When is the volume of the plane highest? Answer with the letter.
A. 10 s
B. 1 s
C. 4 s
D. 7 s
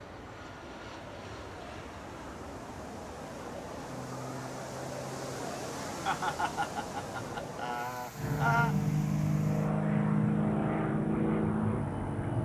A.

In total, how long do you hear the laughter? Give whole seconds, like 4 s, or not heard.
3 s.